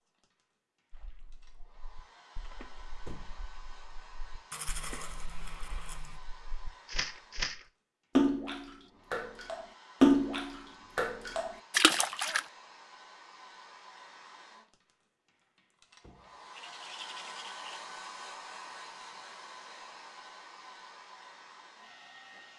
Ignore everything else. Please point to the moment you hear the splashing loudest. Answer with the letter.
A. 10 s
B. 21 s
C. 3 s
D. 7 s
A.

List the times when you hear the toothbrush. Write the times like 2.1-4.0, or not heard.
4.5-6.2, 16.5-17.7.